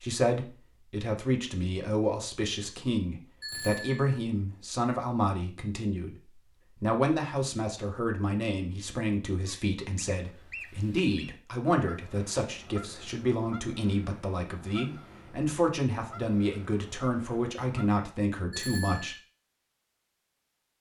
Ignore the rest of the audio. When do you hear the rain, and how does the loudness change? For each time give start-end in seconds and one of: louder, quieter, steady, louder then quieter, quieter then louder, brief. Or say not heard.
not heard.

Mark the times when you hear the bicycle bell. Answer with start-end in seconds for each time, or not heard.
3.4-4.2, 18.5-19.2.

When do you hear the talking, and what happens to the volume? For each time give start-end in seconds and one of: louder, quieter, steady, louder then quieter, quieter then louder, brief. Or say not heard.
0.0-19.1 steady.